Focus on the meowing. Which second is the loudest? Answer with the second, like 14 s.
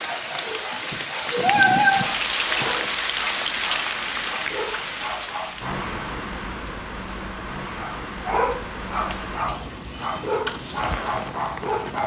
2 s.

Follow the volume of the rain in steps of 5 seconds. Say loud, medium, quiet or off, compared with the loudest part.
loud, medium, medium.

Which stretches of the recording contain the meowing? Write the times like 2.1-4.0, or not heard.
0.9-2.9, 9.1-10.2.